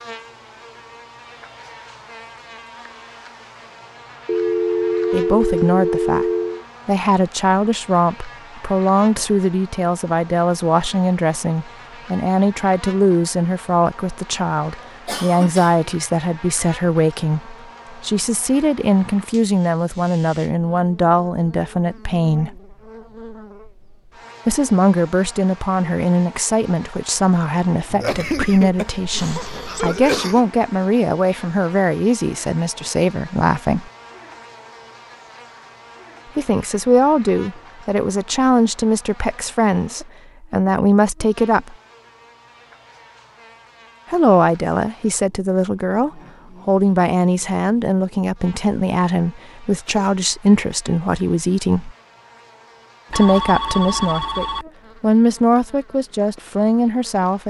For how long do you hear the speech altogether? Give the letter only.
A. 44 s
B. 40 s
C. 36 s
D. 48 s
A.